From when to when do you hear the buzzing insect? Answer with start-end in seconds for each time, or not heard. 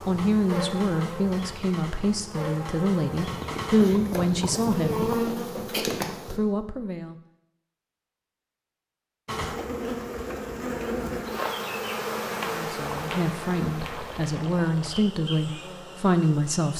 0.0-6.4, 9.2-16.7.